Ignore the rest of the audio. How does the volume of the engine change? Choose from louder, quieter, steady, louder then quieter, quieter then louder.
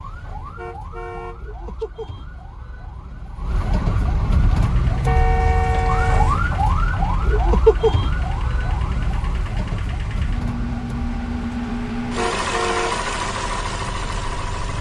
louder.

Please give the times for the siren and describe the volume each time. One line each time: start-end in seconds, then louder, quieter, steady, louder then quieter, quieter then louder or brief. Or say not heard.
0.0-14.7 louder then quieter.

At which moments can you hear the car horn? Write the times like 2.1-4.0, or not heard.
0.6-1.9, 5.0-6.3, 12.2-13.0.